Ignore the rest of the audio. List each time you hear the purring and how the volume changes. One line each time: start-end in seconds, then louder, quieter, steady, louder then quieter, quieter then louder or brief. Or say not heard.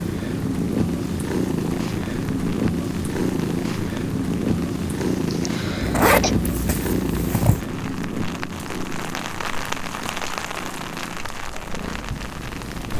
0.0-12.9 quieter.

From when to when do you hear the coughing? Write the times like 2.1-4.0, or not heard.
5.2-6.3.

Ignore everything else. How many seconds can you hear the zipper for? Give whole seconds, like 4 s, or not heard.
2 s.